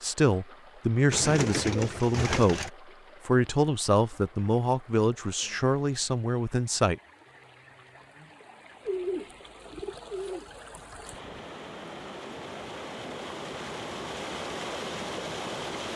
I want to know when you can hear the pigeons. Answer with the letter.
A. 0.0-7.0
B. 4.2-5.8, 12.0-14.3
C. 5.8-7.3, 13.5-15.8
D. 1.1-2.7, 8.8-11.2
D.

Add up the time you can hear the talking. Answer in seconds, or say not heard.
7 s.